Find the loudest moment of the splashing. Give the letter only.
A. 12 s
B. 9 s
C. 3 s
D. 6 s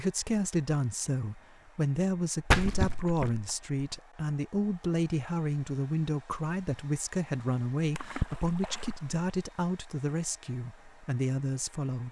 C.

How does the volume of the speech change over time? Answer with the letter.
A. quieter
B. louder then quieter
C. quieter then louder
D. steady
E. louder
D.